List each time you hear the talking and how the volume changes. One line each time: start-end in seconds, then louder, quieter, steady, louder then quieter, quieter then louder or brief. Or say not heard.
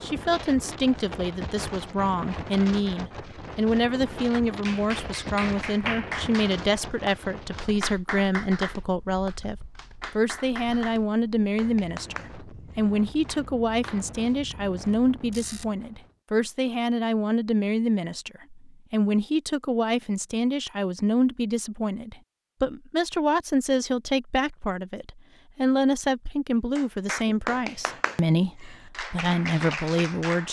0.0-30.4 steady.